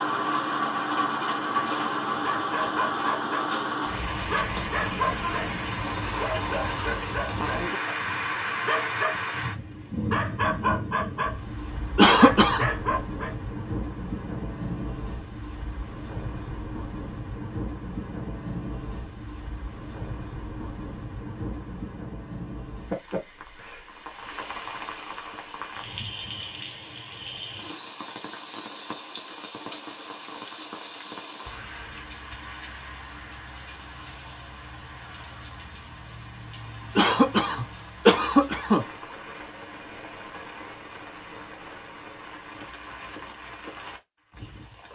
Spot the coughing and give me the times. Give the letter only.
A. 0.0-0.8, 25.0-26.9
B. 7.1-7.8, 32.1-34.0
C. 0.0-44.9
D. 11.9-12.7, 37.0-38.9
D.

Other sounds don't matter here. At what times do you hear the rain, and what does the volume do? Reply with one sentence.
The rain can be heard from 0.0 to 44.9 s, getting quieter.